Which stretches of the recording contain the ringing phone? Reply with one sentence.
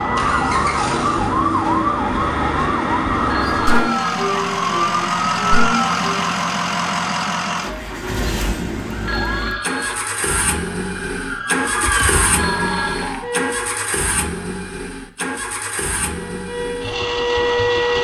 The ringing phone can be heard from 3.2 to 4.2 s, from 9.1 to 9.9 s and from 12.3 to 13.2 s.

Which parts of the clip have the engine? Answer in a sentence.
You can hear the engine from 0.1 to 17.9 s.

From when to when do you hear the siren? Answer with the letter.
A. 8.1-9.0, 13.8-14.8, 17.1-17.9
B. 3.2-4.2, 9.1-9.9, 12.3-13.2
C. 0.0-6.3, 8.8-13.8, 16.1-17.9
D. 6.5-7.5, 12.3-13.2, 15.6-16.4
C.